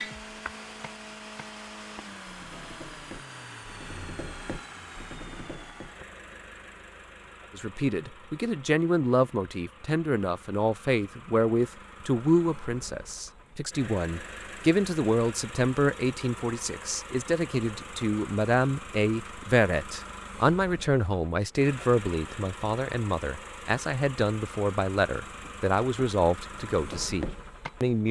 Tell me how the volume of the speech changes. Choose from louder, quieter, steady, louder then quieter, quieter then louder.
steady.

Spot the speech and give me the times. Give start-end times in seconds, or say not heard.
7.5-28.0.